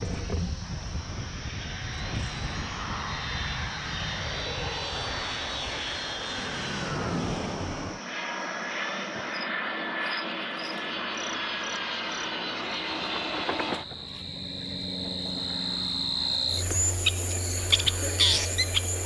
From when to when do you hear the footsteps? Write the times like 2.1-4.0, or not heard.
not heard.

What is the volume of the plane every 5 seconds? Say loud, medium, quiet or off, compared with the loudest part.
loud, loud, loud, medium.